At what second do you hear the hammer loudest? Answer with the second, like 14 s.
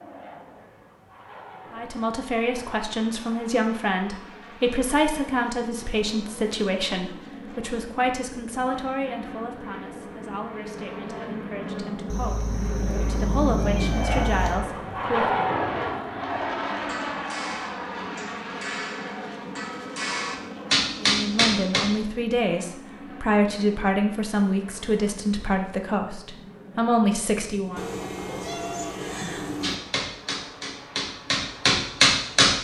32 s.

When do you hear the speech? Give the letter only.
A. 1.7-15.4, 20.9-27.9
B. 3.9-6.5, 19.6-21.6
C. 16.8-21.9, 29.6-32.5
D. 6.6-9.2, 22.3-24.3
A.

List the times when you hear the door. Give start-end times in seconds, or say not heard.
not heard.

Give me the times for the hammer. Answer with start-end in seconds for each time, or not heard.
16.8-21.9, 29.6-32.5.